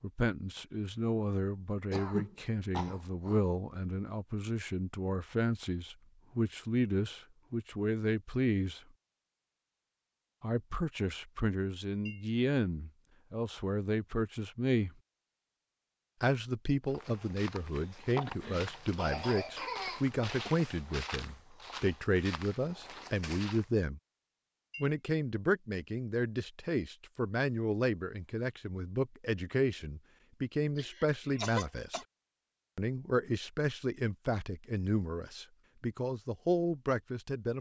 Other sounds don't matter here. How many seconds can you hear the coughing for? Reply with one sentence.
You can hear the coughing for 5 seconds altogether.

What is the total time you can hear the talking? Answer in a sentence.
You can hear the talking for 33 seconds altogether.